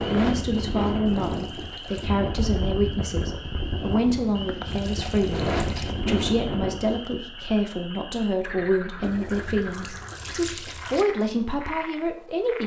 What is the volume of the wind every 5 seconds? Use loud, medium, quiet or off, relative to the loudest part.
loud, loud, off.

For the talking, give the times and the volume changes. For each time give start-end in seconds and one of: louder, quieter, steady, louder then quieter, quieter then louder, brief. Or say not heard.
0.0-12.6 steady.